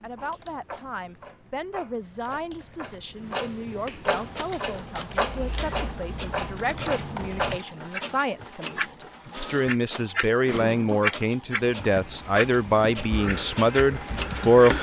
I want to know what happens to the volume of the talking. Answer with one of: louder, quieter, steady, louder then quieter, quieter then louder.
louder.